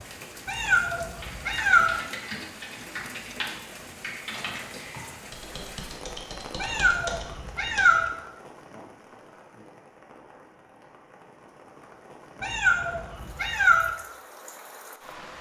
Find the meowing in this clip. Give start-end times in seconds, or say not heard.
0.5-1.9, 6.6-8.1, 12.4-13.9.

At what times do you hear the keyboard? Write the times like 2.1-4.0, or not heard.
1.2-7.8.